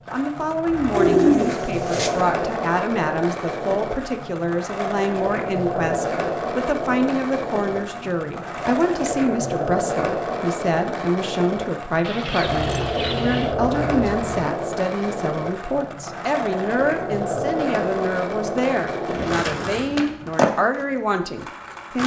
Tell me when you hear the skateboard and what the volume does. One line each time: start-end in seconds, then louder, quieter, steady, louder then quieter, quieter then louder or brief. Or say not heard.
0.0-22.0 steady.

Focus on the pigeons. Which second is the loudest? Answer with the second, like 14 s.
1 s.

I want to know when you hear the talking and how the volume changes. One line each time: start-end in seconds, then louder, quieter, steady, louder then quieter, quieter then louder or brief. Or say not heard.
0.1-22.0 steady.